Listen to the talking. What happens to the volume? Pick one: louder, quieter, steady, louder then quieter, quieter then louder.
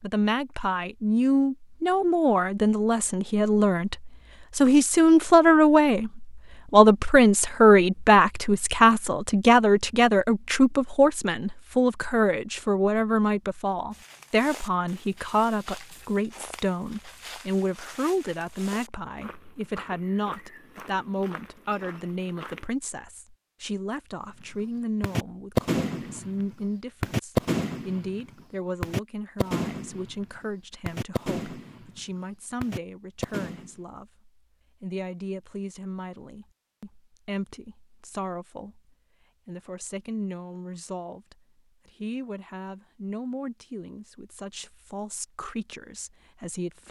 quieter.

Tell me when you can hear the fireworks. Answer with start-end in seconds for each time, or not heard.
25.0-28.2, 28.8-30.2, 30.9-32.0, 32.6-33.7.